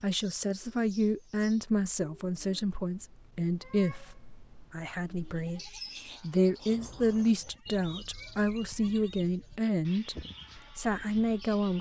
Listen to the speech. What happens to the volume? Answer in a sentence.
The loudness of the speech stays about the same.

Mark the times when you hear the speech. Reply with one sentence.
The speech can be heard from 0.0 to 11.7 s.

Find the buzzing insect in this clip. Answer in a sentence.
You can't hear the buzzing insect here.